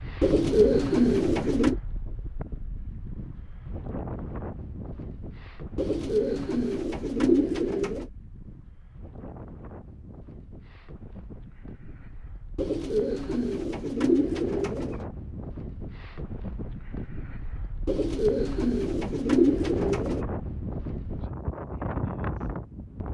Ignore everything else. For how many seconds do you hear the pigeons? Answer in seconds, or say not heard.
9 s.